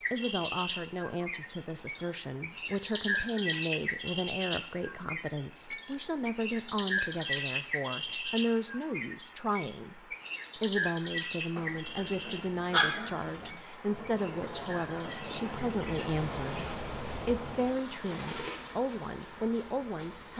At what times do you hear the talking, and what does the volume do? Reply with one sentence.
The talking can be heard from 0.1 to 20.3 s, at a steady volume.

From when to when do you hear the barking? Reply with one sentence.
The barking can be heard from 11.6 to 13.6 s.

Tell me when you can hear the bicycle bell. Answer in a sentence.
You can hear the bicycle bell from 5.7 to 6.2 s and from 15.9 to 16.4 s.